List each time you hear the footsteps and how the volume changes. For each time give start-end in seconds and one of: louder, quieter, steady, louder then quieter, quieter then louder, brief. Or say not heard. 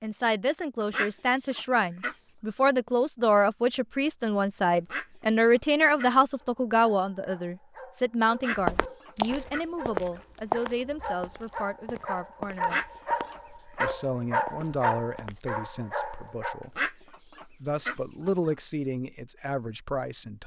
8.6-15.6 quieter then louder.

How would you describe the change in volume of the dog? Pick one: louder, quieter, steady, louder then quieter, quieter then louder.
louder.